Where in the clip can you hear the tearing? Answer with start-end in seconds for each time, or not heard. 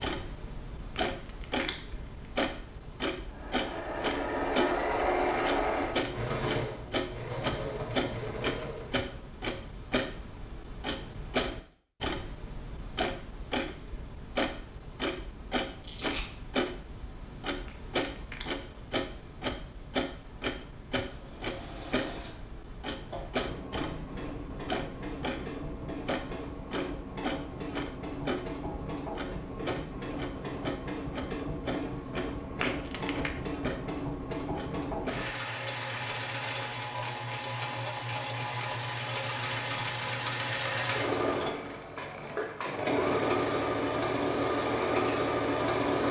15.8-16.2.